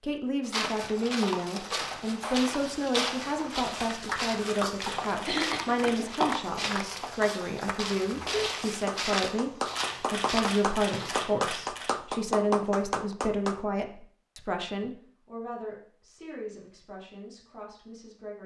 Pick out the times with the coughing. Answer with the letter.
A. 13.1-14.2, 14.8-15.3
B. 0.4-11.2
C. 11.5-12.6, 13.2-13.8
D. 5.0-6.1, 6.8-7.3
D.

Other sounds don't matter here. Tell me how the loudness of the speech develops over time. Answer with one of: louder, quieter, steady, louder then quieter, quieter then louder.
quieter.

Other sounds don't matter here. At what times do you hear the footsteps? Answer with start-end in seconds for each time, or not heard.
0.4-11.2.